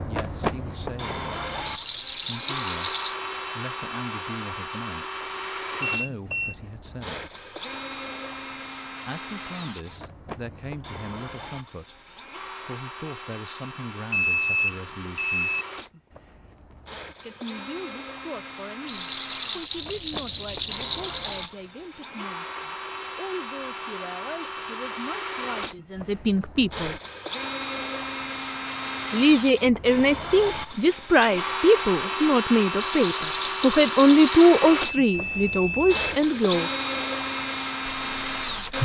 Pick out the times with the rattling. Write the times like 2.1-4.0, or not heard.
1.6-3.1, 18.9-21.6, 32.8-34.6.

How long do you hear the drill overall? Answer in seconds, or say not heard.
39 s.